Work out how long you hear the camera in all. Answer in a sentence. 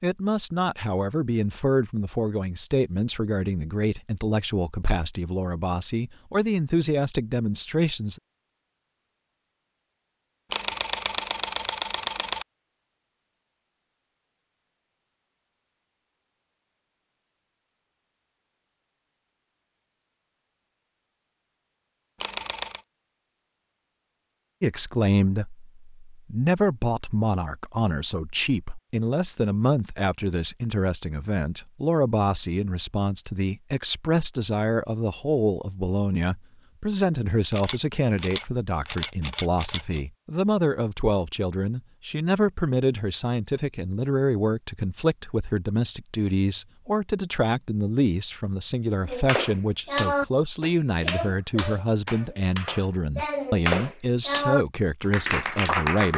The camera can be heard for 5 seconds in total.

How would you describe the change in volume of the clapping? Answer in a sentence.
The loudness of the clapping goes down, then up.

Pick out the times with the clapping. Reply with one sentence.
You can hear the clapping from 49.0 to 56.1 s.